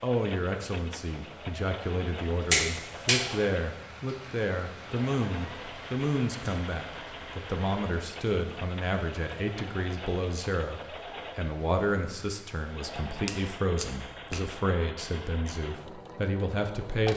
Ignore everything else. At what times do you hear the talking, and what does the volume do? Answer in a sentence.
You can hear the talking from 0.0 to 17.1 s, at a steady volume.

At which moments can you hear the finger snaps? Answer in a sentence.
The finger snaps can be heard from 2.5 to 3.4 s and from 13.2 to 14.5 s.